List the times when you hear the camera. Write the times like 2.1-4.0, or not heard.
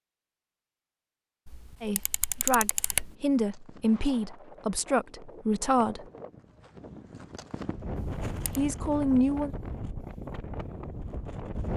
1.4-3.1, 8.0-8.6.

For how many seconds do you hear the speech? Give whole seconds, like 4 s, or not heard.
5 s.